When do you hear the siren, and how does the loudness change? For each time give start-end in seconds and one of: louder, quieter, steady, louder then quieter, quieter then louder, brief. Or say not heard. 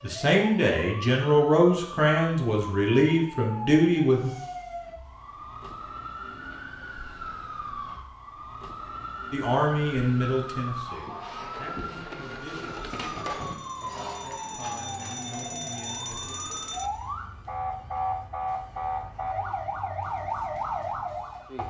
0.0-21.6 louder.